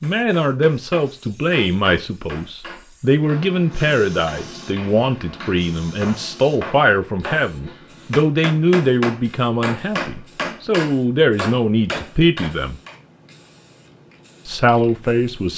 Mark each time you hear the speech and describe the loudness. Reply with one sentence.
The speech can be heard from 0.0 to 12.8 s, at a steady volume; and briefly from 14.4 to 15.5 s.